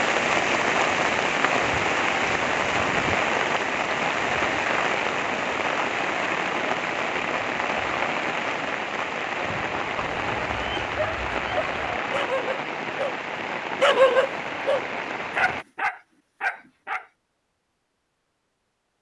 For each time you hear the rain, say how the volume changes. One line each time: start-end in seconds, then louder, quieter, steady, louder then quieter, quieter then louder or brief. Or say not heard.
0.0-15.7 quieter.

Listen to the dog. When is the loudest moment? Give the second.
14 s.